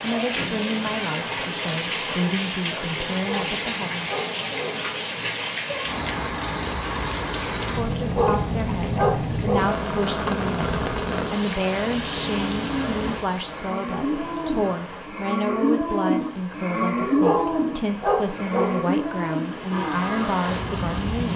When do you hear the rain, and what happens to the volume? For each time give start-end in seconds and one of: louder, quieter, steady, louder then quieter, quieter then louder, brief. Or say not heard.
0.0-21.3 quieter.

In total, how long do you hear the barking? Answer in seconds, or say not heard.
5 s.